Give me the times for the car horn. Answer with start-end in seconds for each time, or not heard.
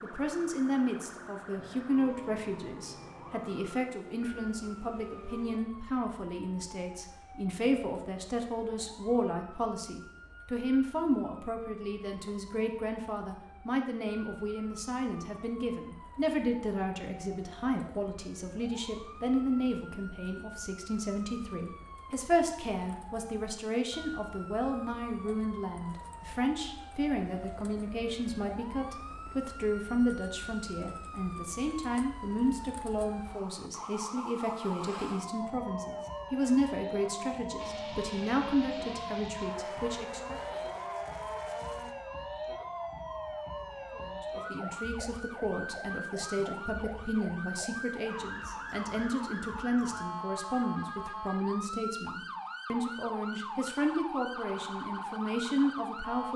not heard.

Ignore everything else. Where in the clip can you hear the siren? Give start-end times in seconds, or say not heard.
0.0-56.3.